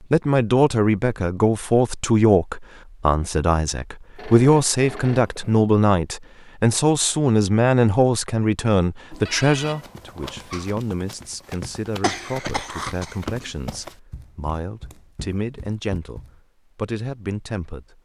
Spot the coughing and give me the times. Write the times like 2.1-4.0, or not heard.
12.0-13.5.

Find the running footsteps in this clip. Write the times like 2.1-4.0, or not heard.
9.6-16.4.